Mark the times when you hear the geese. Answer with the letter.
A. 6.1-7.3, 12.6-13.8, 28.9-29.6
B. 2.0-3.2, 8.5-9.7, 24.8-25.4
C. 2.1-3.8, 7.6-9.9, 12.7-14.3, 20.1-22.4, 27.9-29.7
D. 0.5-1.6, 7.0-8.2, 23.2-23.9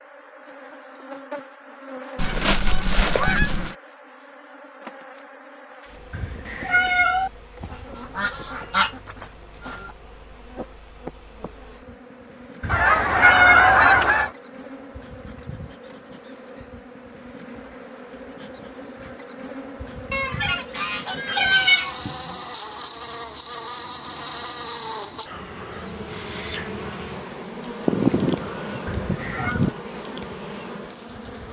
C.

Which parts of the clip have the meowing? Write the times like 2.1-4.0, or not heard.
6.1-7.3, 12.6-13.8, 28.9-29.6.